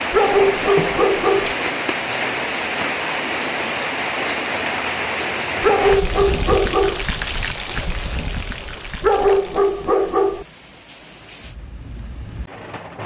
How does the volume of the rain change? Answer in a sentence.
The volume of the rain goes down.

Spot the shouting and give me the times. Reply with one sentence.
You can't hear the shouting here.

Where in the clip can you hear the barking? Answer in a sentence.
The barking can be heard from 0.1 to 1.6 s, from 5.6 to 7.0 s and from 9.0 to 10.4 s.